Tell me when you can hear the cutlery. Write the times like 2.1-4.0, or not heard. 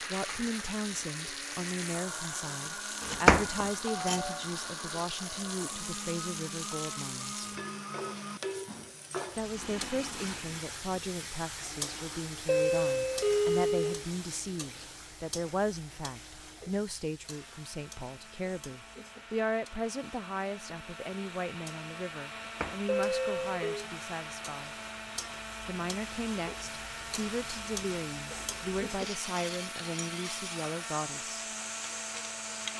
not heard.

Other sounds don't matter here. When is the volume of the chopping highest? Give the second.
3 s.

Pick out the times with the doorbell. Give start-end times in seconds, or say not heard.
3.9-4.5, 12.4-14.1, 22.9-23.9.